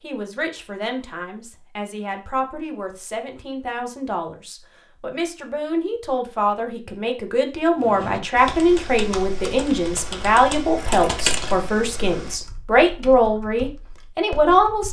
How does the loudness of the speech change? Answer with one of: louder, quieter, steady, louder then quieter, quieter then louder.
louder.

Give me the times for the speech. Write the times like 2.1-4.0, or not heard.
0.0-14.8.